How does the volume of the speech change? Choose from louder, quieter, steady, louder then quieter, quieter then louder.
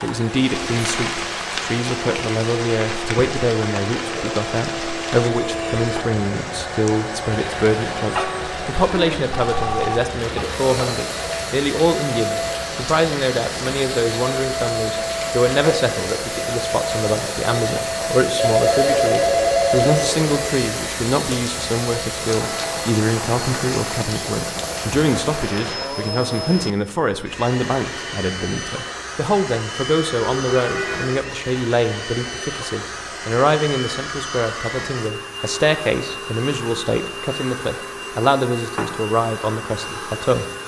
steady.